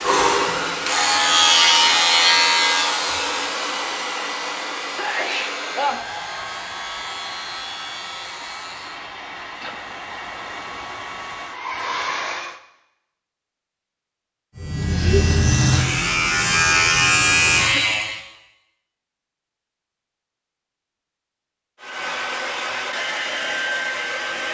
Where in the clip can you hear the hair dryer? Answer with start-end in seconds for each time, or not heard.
0.0-12.6, 21.8-24.4.